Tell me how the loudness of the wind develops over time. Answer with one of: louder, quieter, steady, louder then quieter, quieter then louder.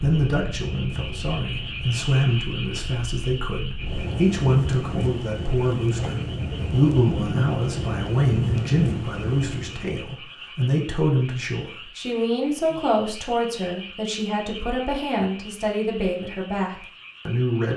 louder.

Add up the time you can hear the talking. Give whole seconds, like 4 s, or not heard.
18 s.